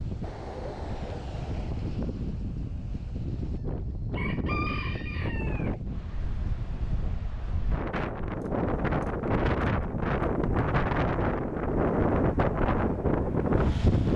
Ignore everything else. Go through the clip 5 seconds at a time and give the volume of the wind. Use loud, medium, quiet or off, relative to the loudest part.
medium, medium, loud.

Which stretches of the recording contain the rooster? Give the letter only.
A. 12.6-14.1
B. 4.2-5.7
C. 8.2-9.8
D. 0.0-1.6
B.